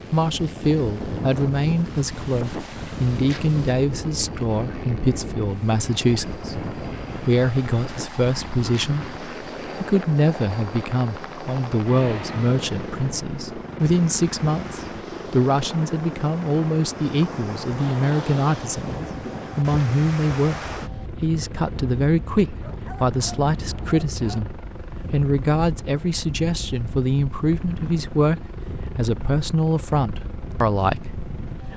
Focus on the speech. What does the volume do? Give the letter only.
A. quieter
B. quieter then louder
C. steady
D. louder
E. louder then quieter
C.